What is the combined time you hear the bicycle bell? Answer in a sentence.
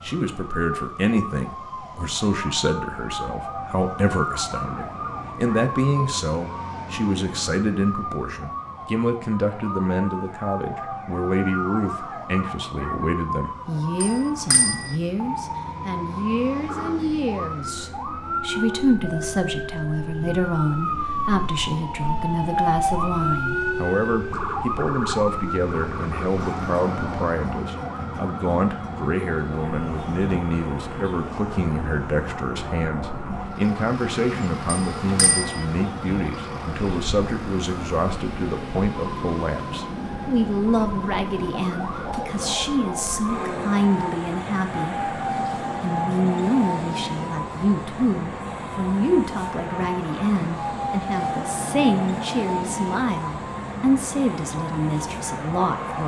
The bicycle bell can be heard for 2 seconds in total.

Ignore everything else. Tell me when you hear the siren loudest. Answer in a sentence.
The volume of the siren peaks at 23 seconds.